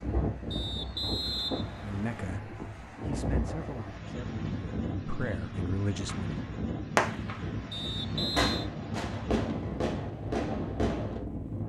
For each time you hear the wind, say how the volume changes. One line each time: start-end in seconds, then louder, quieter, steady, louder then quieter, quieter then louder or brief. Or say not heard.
0.0-11.6 steady.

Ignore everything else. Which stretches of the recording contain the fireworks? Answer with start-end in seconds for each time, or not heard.
6.0-11.2.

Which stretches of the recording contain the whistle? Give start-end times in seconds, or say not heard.
0.5-2.4, 7.7-8.7.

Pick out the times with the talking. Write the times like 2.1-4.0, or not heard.
1.8-6.3.